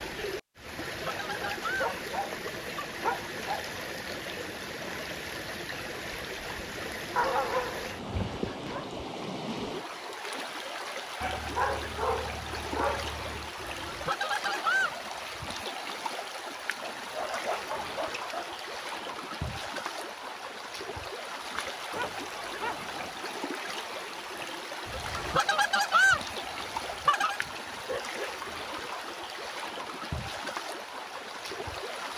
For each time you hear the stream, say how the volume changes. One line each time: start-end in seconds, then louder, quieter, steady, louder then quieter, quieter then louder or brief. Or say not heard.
0.0-32.1 steady.